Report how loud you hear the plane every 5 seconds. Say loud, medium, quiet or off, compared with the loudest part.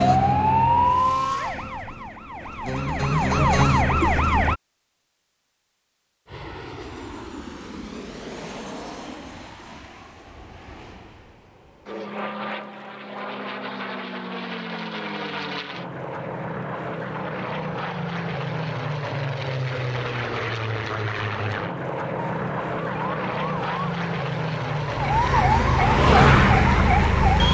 off, medium, medium, loud, loud, loud.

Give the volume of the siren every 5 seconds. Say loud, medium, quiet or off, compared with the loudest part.
loud, off, off, off, quiet, loud.